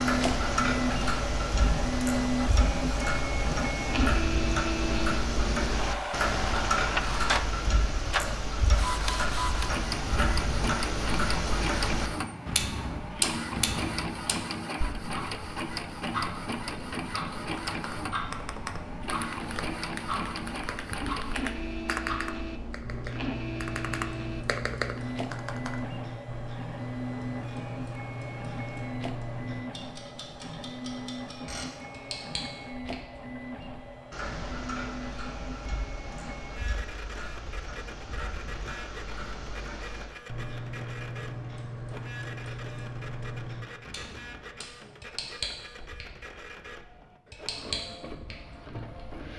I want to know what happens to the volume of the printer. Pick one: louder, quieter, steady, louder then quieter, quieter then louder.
quieter.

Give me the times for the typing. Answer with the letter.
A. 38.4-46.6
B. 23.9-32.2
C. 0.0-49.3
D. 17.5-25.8
D.